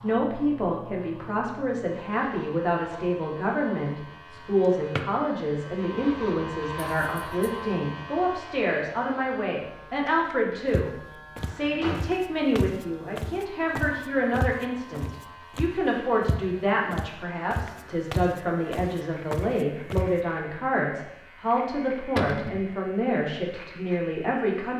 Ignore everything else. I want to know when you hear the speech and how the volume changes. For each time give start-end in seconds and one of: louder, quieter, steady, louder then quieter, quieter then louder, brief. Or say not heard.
0.0-24.7 steady.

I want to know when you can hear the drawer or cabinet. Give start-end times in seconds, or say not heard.
11.3-12.1, 22.1-22.6.